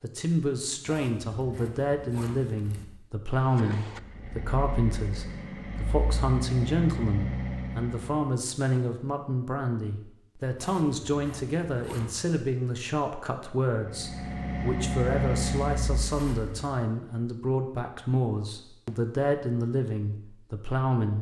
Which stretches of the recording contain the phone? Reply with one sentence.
The phone can't be heard in this clip.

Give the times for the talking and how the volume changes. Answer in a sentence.
You can hear the talking from 0.0 to 21.1 s, at a steady volume.